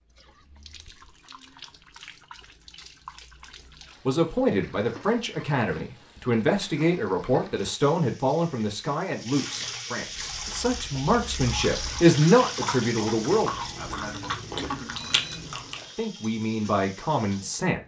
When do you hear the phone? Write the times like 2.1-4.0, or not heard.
14.9-15.4.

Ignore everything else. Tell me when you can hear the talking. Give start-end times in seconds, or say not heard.
4.0-13.5, 15.9-17.8.